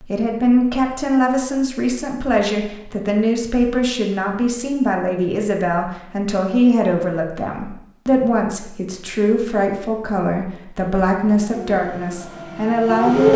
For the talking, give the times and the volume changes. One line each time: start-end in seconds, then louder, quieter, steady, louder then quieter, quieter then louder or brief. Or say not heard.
0.0-13.3 steady.